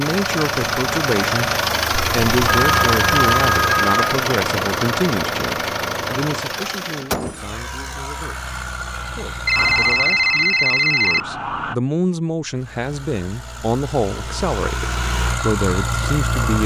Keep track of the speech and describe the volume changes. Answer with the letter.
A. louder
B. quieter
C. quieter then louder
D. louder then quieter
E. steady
C.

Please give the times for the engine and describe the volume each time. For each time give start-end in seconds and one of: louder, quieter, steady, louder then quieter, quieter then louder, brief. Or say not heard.
0.0-10.2 quieter
12.4-16.6 louder.